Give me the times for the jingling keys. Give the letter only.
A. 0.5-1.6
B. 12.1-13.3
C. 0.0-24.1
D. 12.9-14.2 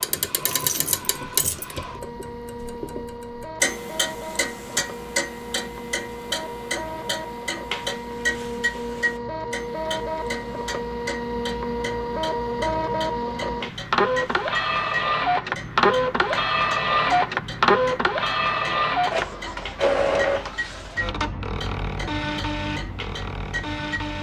A.